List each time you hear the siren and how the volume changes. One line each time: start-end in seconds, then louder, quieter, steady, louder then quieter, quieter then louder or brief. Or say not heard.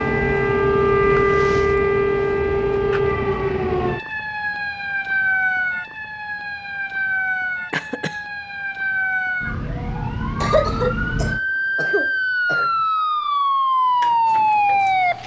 0.0-15.2 quieter then louder.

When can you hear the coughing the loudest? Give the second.
11 s.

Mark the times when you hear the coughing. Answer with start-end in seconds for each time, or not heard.
1.1-1.8, 7.7-8.2, 10.4-12.7.